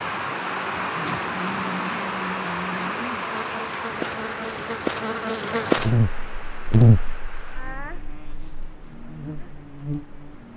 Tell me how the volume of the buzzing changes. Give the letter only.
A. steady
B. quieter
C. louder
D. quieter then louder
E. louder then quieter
E.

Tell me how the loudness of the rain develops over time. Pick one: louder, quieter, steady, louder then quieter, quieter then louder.
quieter.